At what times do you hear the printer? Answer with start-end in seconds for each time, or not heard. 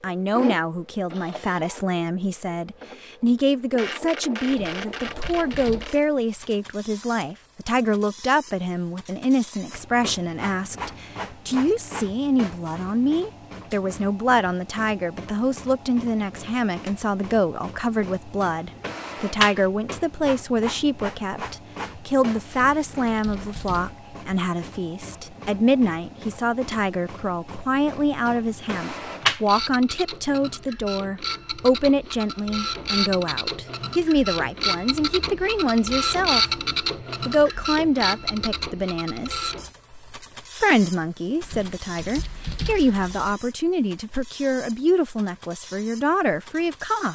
0.0-47.1.